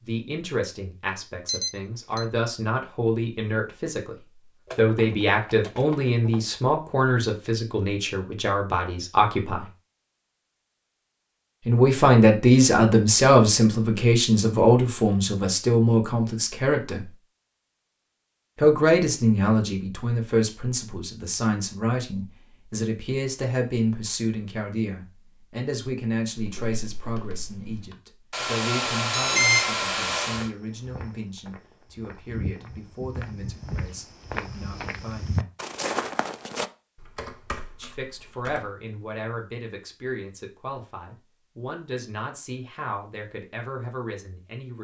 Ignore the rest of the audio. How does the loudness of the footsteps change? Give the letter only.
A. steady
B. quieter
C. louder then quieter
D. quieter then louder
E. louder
E.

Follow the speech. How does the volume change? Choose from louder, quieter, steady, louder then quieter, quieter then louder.
louder then quieter.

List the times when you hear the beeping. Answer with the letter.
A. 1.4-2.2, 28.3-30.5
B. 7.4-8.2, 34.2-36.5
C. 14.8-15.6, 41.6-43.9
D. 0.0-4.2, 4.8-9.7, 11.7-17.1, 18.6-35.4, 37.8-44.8
A.